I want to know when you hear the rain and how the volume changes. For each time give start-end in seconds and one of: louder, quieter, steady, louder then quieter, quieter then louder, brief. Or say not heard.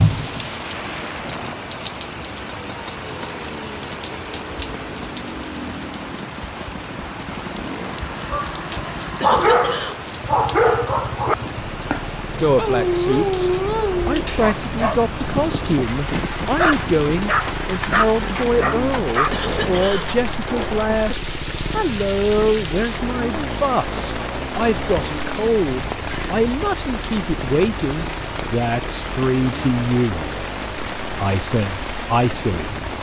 0.0-32.9 steady.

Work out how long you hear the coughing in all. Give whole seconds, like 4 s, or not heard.
2 s.